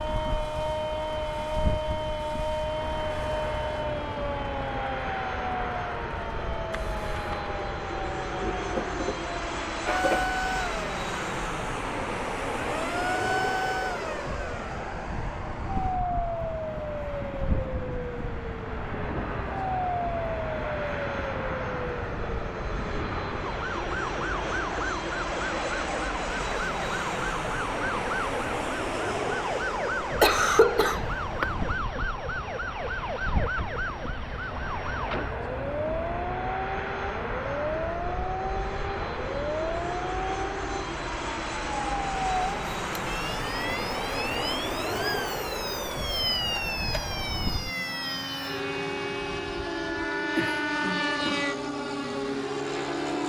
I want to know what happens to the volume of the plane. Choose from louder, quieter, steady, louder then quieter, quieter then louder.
steady.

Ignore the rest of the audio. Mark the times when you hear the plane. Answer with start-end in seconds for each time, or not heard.
0.0-53.2.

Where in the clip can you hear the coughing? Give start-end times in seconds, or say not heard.
8.4-10.2, 30.2-31.4, 50.4-51.5.